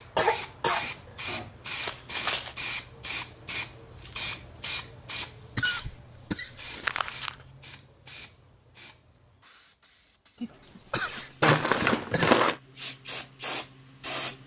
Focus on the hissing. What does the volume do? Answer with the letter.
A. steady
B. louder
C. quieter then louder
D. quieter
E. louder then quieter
C.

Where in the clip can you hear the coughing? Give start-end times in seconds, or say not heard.
0.1-1.6, 5.5-7.5, 10.3-12.3.